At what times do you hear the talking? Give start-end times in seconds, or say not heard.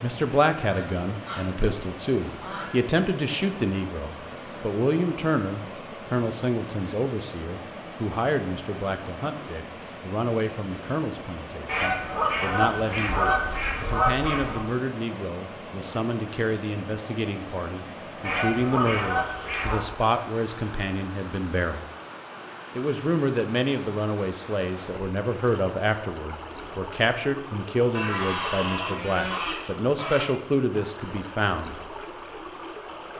0.0-21.9, 22.8-31.8.